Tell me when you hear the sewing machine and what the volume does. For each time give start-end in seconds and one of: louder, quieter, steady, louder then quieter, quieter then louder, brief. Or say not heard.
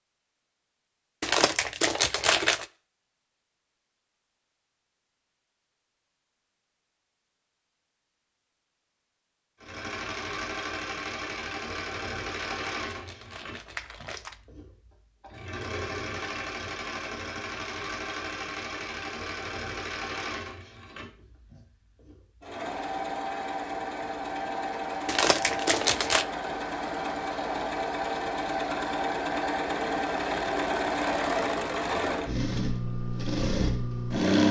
9.6-34.4 louder.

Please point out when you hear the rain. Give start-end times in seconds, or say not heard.
not heard.